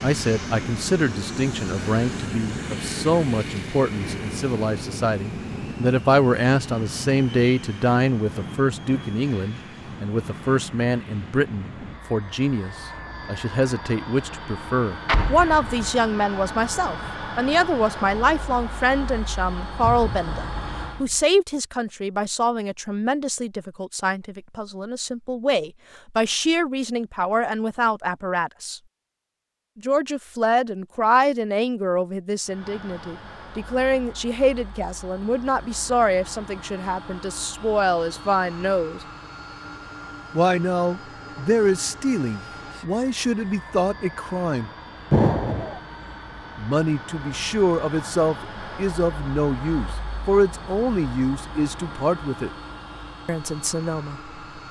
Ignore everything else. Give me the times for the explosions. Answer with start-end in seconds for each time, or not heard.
15.1-15.9, 19.8-21.2, 45.1-45.8.